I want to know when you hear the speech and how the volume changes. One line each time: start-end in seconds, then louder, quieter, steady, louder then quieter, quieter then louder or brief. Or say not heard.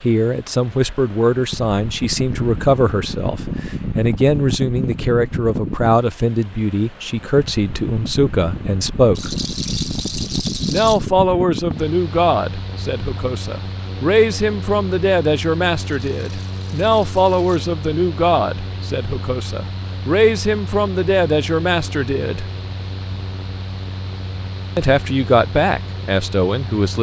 0.0-9.3 steady
10.7-22.4 steady
24.8-26.9 brief.